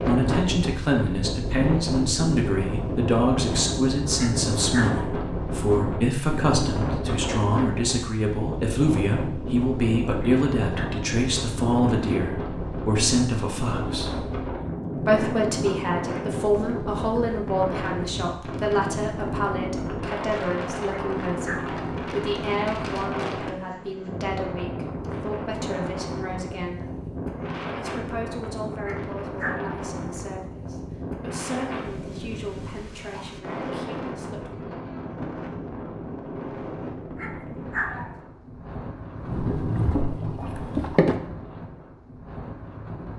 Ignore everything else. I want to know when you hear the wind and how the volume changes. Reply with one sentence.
You can hear the wind from 0.0 to 43.1 s, getting quieter.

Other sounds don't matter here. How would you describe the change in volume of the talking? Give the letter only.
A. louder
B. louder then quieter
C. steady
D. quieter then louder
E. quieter
E.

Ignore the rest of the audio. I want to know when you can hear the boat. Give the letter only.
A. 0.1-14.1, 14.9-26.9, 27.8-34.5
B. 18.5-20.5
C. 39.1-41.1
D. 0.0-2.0
C.